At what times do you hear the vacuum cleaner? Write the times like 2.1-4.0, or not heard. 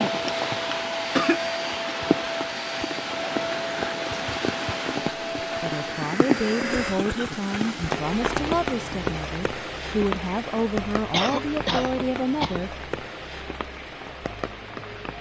0.0-7.0.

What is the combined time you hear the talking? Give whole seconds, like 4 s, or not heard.
7 s.